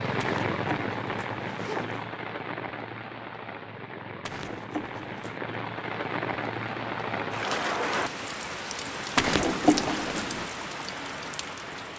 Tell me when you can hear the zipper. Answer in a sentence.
The zipper can be heard from 0.2 to 2.1 s, from 4.2 to 5.4 s and from 9.2 to 10.4 s.